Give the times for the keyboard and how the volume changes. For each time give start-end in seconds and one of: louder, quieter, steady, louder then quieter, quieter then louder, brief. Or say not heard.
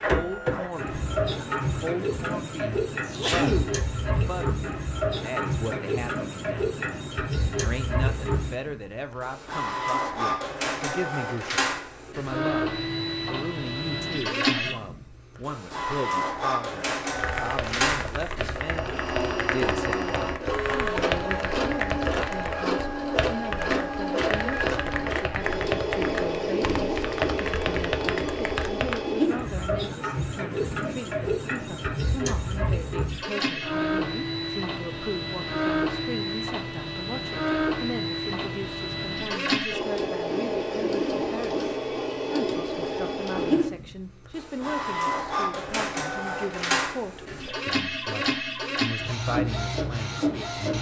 17.1-29.0 steady.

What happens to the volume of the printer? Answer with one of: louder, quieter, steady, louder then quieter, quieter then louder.
steady.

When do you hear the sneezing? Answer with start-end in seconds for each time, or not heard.
3.0-4.4.